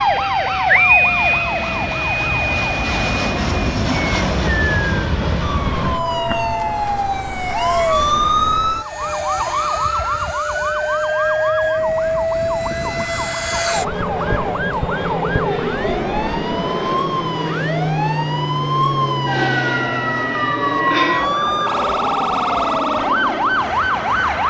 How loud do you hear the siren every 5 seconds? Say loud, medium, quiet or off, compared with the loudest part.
loud, loud, medium, medium, loud.